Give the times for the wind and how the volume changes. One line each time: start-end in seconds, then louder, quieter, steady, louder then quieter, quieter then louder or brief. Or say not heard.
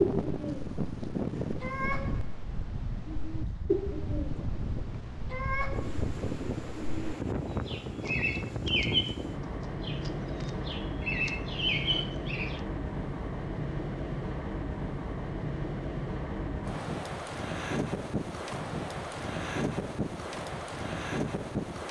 0.0-21.8 steady.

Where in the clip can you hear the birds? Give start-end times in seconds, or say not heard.
0.0-12.6.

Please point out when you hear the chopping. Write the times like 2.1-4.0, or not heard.
not heard.